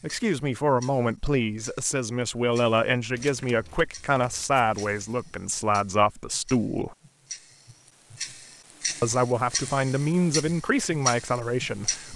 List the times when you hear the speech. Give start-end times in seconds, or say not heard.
0.0-7.0, 9.0-12.1.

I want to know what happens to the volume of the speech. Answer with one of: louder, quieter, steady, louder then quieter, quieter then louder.
steady.